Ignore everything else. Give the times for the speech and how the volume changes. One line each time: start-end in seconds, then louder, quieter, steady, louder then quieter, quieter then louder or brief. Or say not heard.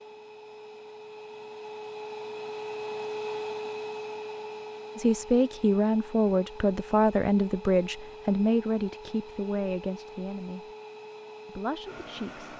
5.0-10.7 quieter
11.4-12.5 brief.